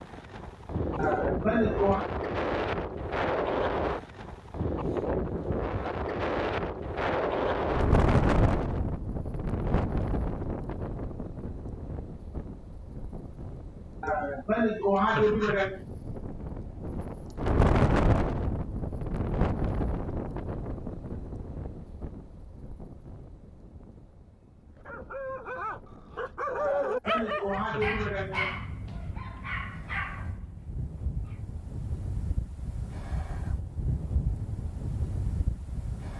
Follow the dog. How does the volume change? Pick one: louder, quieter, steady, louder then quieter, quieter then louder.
louder then quieter.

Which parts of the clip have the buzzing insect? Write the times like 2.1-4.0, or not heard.
not heard.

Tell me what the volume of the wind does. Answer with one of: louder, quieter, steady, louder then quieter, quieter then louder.
quieter then louder.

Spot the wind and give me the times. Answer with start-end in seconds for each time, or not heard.
0.0-36.1.